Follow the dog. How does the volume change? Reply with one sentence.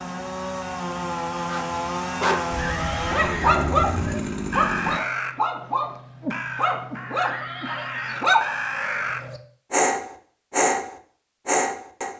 The volume of the dog goes down, then up.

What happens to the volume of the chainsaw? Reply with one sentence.
The volume of the chainsaw stays about the same.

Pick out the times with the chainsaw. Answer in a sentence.
The chainsaw can be heard from 0.0 to 5.0 s.